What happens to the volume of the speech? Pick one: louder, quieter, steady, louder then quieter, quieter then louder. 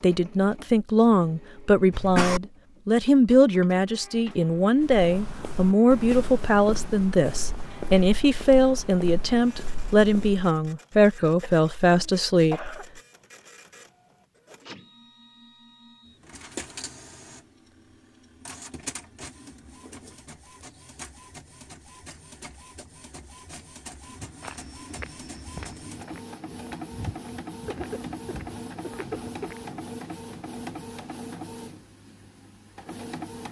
steady.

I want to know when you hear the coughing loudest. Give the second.
2 s.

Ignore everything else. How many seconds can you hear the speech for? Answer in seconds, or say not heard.
13 s.